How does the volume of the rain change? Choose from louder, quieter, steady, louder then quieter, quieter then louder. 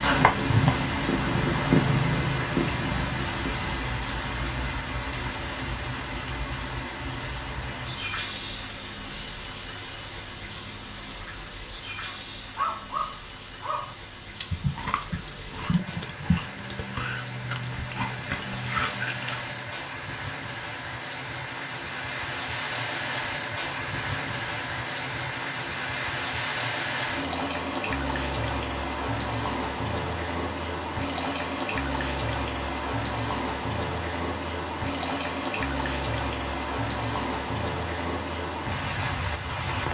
quieter then louder.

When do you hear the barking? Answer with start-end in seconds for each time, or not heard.
12.1-13.9.